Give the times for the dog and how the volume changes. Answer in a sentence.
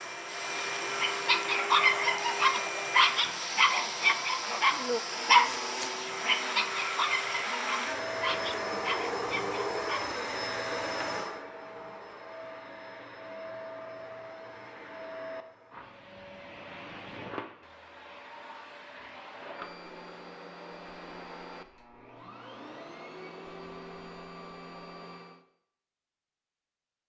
You can hear the dog from 0.9 to 10.2 s, getting quieter.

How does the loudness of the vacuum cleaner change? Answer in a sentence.
The volume of the vacuum cleaner goes down.